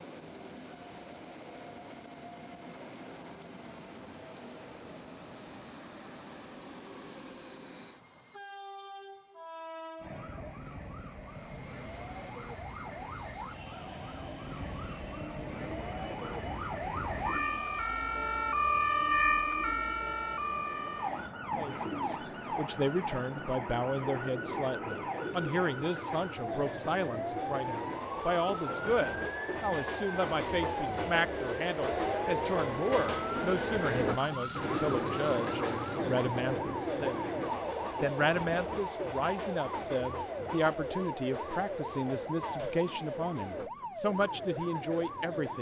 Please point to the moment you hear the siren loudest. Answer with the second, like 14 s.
19 s.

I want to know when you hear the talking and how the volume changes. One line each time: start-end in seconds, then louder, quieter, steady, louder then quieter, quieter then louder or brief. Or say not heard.
21.6-45.5 steady.